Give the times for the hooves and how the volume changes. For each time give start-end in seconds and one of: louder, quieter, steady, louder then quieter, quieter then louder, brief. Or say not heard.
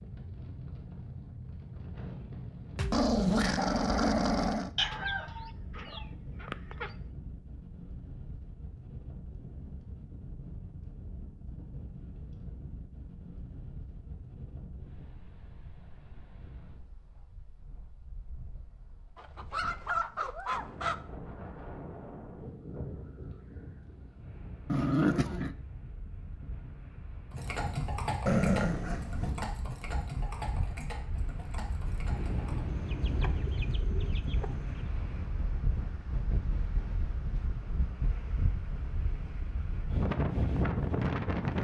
27.3-32.6 quieter.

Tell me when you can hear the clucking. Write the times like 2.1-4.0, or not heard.
4.8-6.9, 19.1-20.9, 32.7-34.8.